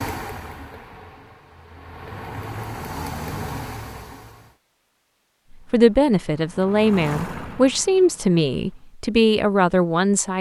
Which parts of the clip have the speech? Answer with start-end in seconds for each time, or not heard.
5.7-10.3.